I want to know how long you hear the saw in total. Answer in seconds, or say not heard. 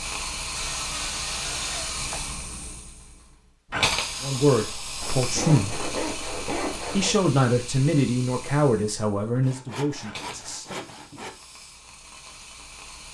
6 s.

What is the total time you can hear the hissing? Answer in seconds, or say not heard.
13 s.